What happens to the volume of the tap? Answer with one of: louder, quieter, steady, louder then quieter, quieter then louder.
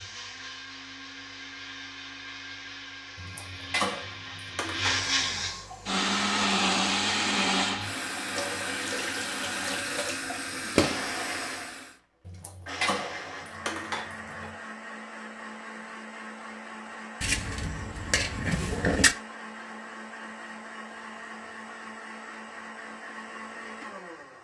louder.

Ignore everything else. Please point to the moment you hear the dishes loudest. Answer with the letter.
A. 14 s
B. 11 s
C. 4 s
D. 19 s
D.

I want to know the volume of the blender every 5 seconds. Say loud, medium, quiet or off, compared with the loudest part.
medium, loud, medium, quiet, quiet.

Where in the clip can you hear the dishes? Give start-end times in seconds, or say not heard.
3.1-5.5, 12.2-14.6, 17.2-19.1.